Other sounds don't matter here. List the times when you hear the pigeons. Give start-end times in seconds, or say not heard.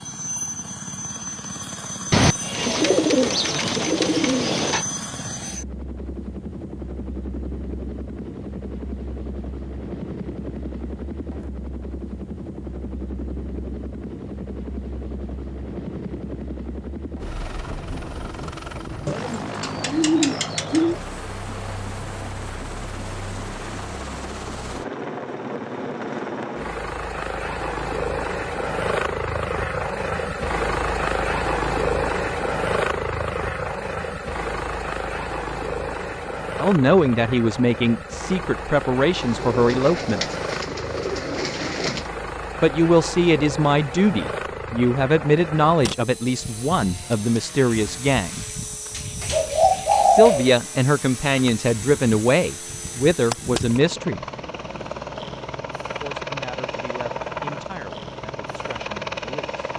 2.1-4.8, 19.1-20.9, 39.2-42.0, 48.9-50.5.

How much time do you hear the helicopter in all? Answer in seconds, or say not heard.
60 s.